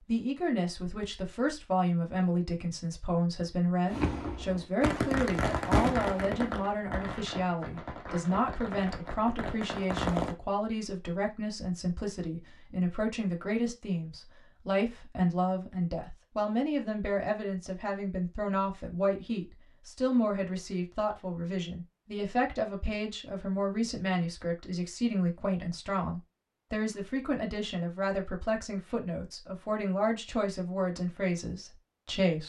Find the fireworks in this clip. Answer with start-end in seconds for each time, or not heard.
3.9-10.3.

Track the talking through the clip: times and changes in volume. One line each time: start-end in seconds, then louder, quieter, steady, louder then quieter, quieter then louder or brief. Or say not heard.
0.1-32.4 steady.